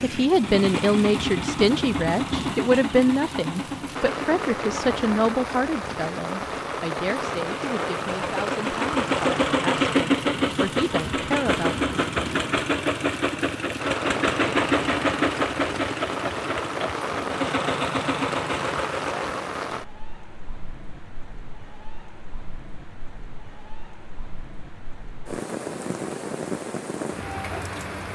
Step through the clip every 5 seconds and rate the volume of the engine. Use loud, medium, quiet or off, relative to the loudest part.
medium, loud, loud, loud, off, off.